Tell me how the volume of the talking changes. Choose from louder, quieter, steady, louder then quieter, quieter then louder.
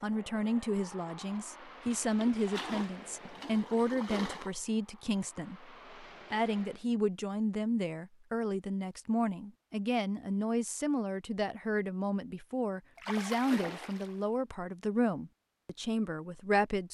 steady.